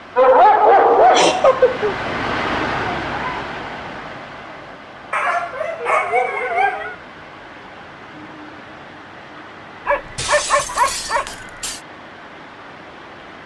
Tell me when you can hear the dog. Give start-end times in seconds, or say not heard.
0.1-1.9, 5.1-7.0, 9.8-11.8.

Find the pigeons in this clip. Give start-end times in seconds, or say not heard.
not heard.